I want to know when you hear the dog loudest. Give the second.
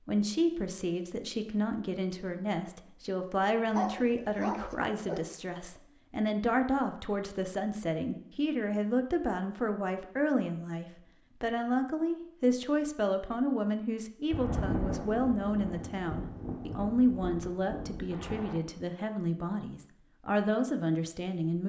4 s.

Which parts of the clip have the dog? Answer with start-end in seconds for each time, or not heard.
3.7-5.2.